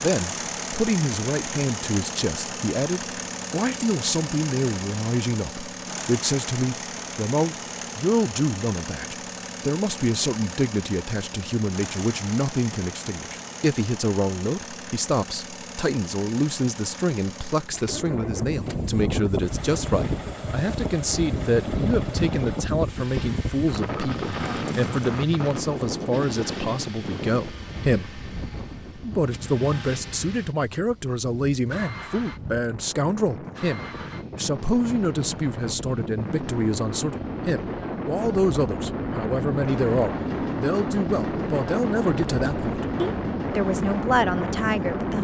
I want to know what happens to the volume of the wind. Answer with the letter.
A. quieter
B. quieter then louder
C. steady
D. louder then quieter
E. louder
B.